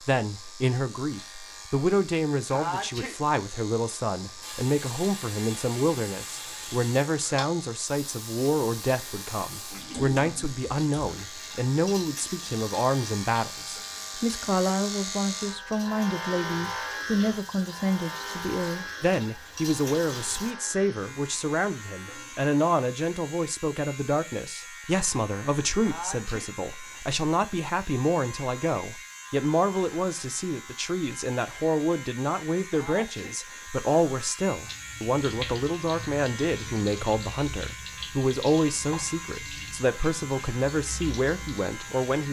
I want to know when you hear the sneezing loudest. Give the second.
3 s.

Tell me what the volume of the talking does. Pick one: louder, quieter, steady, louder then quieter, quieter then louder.
steady.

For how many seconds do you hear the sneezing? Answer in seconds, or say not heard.
2 s.